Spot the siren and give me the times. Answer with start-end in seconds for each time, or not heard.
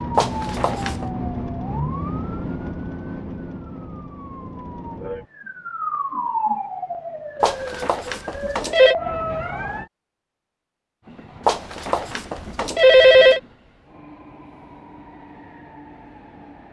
0.0-9.9.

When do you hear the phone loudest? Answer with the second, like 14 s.
13 s.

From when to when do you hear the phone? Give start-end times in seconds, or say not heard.
0.1-1.1, 7.4-8.9, 11.4-13.4.